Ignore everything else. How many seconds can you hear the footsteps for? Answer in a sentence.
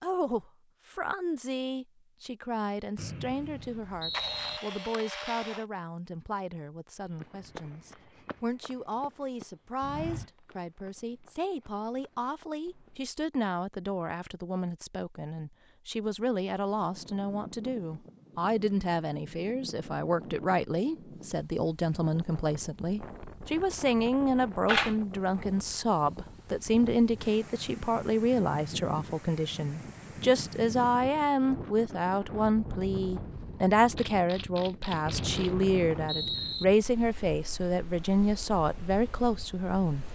You can hear the footsteps for 6 seconds altogether.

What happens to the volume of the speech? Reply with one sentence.
The volume of the speech goes up.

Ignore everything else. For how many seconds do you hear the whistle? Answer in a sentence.
You can hear the whistle for 3 seconds altogether.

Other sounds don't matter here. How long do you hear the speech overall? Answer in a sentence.
You can hear the speech for 40 seconds altogether.